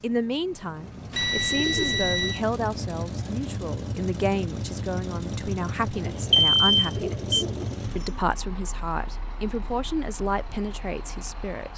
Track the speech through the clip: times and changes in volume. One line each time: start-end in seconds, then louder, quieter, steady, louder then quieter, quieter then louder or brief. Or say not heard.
0.0-11.7 steady.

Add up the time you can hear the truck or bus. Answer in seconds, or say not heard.
12 s.